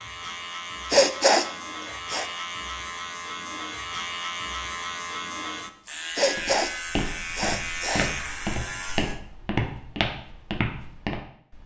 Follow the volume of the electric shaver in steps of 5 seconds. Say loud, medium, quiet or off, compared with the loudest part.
loud, loud, off.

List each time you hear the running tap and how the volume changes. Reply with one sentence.
You can't hear the running tap here.